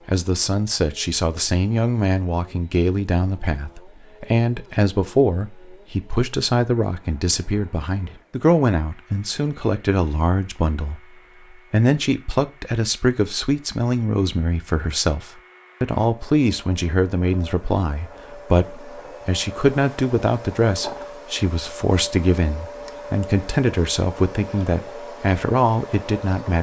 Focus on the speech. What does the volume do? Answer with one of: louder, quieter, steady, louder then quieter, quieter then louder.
steady.